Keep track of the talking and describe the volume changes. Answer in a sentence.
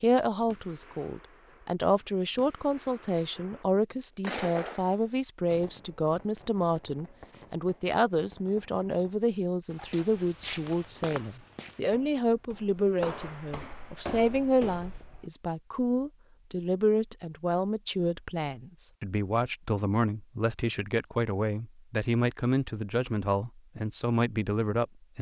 The loudness of the talking stays about the same.